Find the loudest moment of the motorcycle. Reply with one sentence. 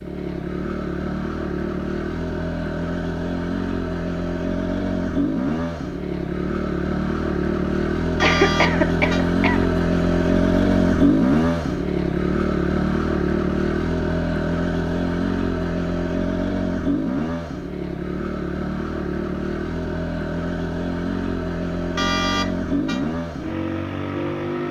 The volume of the motorcycle peaks at 11 seconds.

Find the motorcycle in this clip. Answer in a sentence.
The motorcycle can be heard from 0.0 to 24.6 s.